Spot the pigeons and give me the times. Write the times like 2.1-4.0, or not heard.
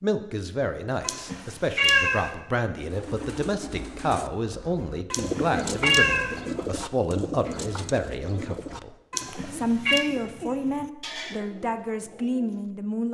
2.8-12.7.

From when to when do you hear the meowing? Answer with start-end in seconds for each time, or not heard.
1.0-2.3, 5.1-6.4, 9.1-10.1.